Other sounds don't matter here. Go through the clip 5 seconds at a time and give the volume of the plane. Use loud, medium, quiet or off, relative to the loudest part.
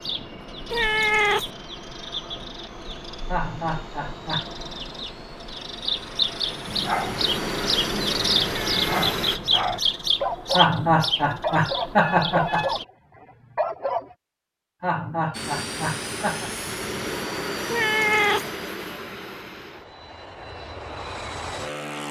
quiet, loud, off, loud, loud.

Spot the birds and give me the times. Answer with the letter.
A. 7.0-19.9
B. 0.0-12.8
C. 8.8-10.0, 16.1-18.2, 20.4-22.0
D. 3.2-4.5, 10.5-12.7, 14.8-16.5
B.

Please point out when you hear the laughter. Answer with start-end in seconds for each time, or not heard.
3.2-4.5, 10.5-12.7, 14.8-16.5.